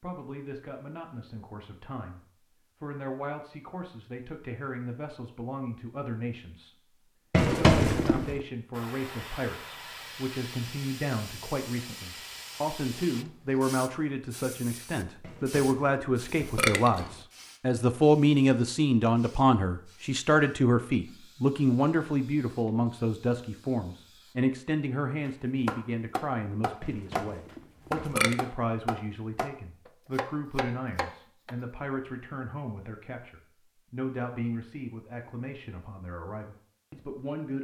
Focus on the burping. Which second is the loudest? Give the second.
8 s.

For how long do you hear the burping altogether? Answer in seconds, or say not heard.
5 s.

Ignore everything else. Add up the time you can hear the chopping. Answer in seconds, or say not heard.
6 s.